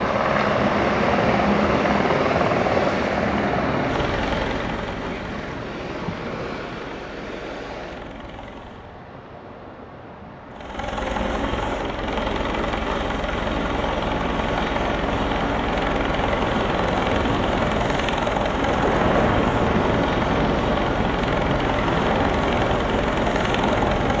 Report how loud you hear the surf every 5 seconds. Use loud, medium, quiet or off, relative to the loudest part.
loud, medium, medium, loud, loud.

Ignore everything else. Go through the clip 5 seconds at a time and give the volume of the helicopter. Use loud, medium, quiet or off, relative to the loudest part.
loud, quiet, loud, loud, loud.